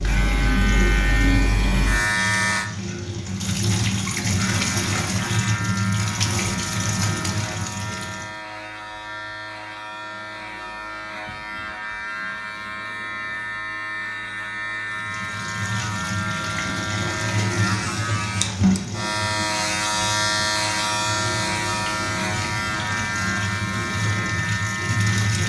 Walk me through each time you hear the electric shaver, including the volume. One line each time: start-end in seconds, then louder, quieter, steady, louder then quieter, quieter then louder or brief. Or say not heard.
0.0-2.7 brief
4.3-25.4 louder.